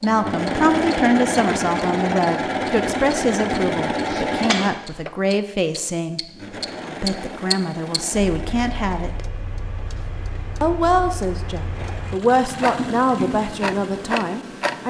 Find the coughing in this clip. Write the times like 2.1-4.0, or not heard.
4.0-4.8.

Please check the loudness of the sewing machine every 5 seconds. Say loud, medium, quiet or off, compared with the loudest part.
loud, quiet, quiet.